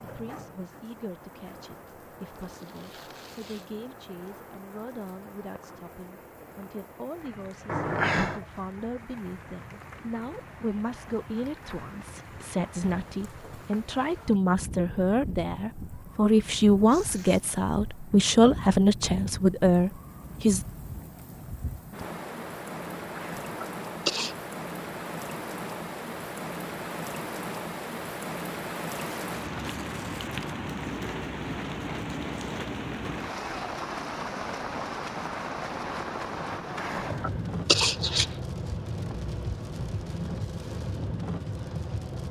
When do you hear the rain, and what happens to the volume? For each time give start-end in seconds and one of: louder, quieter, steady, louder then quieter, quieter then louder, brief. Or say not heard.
0.0-42.2 louder.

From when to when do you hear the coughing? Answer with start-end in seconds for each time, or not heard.
7.7-8.4, 23.1-24.4, 36.5-38.2.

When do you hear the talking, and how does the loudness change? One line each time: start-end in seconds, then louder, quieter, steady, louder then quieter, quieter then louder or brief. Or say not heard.
0.0-20.6 louder.